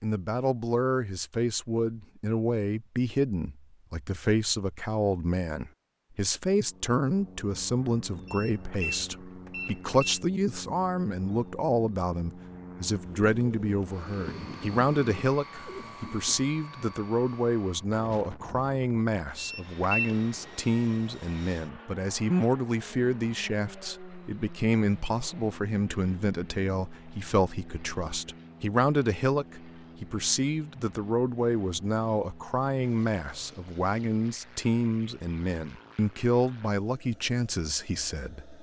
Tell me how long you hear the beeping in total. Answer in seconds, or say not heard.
3 s.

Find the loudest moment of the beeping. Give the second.
20 s.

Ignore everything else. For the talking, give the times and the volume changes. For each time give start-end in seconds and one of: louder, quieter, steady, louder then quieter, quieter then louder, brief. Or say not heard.
0.0-38.5 steady.